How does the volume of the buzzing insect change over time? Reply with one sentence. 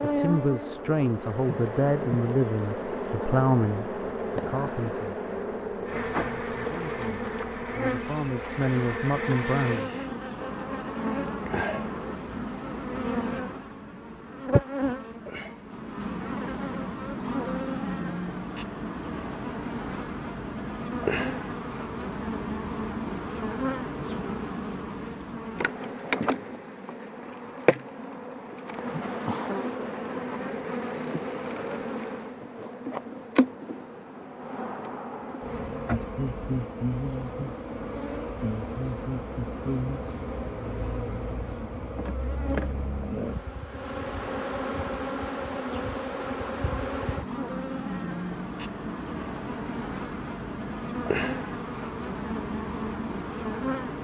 The loudness of the buzzing insect stays about the same.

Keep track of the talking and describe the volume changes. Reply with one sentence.
The loudness of the talking goes down, then up.